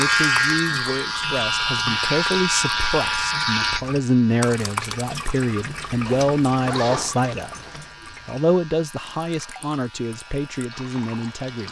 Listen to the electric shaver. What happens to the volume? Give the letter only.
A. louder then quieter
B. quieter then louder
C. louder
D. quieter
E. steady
D.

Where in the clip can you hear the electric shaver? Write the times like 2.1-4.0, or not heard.
0.0-11.6.